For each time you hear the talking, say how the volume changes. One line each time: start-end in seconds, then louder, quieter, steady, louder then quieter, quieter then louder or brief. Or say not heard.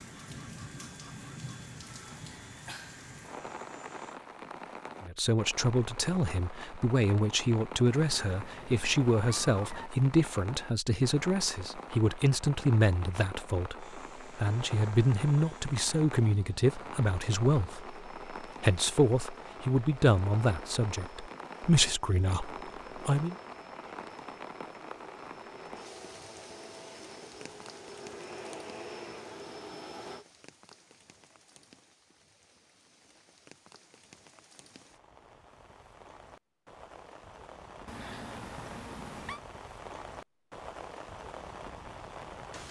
5.0-23.4 steady.